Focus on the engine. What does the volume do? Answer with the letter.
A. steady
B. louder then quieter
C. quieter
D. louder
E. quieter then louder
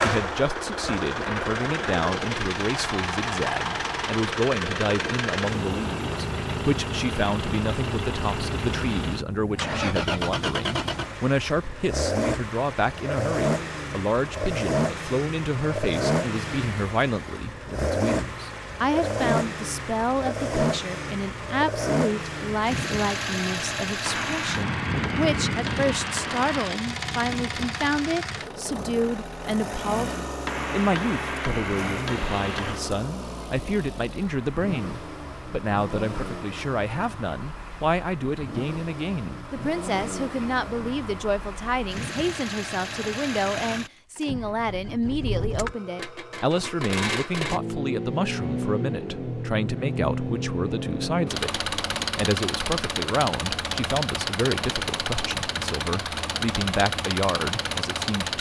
E.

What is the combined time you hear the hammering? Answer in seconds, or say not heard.
5 s.